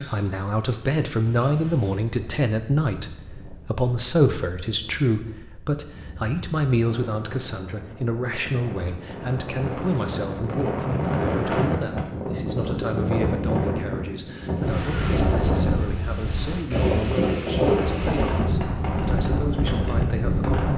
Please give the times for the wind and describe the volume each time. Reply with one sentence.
The wind can be heard from 0.0 to 20.7 s, getting louder.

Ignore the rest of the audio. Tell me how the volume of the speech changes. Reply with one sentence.
The volume of the speech goes down.